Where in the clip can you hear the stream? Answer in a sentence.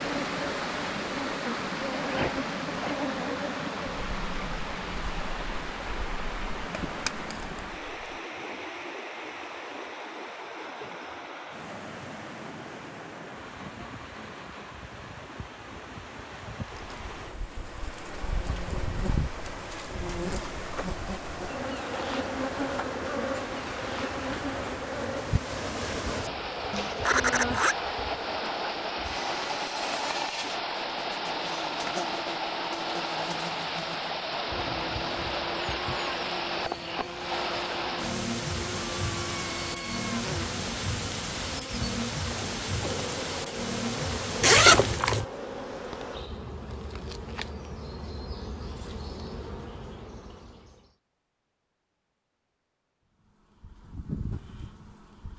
The stream can be heard from 0.0 to 45.0 s.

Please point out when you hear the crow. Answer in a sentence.
The crow can't be heard in this clip.